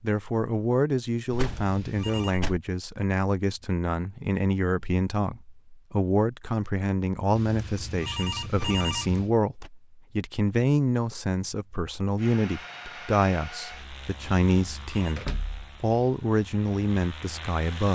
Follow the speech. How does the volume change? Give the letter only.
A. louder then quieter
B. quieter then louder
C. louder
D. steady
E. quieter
D.